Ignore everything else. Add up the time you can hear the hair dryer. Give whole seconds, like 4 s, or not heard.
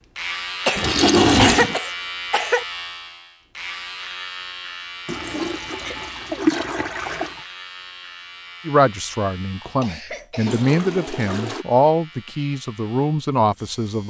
not heard.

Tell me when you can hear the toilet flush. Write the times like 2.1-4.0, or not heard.
0.8-1.8, 5.0-7.4, 10.4-11.7.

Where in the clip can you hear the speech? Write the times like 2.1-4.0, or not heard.
8.7-14.0.